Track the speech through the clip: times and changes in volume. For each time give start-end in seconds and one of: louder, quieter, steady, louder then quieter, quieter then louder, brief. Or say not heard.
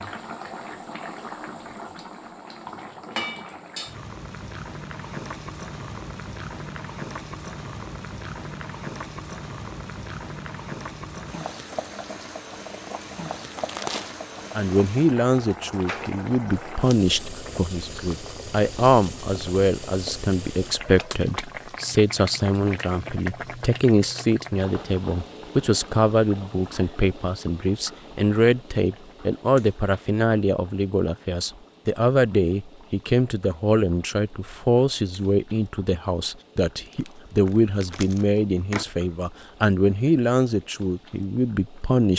14.6-42.1 steady.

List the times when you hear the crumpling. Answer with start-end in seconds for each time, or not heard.
13.5-14.2, 36.9-38.9.